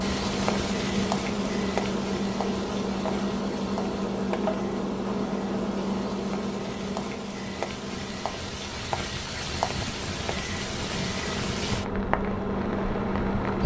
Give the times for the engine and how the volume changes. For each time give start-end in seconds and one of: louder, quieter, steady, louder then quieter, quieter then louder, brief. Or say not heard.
0.0-13.6 quieter then louder.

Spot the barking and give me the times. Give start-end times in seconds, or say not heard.
not heard.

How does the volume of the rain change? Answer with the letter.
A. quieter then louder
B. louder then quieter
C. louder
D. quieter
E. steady
A.